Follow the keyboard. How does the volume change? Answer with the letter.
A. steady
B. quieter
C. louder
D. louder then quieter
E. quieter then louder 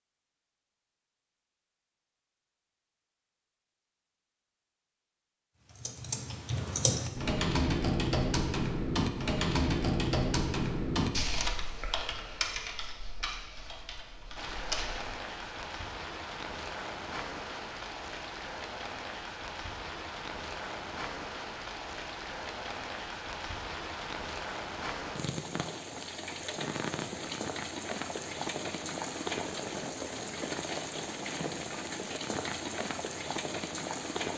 B.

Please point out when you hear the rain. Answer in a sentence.
The rain can be heard from 14.3 to 34.3 s.